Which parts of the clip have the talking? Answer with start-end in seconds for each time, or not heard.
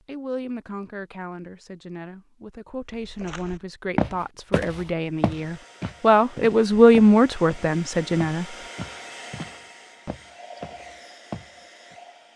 0.1-8.4.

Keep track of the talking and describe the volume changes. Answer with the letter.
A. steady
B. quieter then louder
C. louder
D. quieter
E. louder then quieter
C.